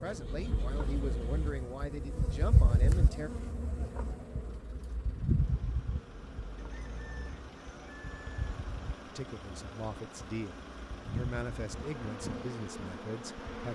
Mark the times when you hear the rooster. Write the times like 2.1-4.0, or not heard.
6.5-8.3.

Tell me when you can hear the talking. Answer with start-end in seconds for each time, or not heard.
0.0-3.3, 9.1-13.7.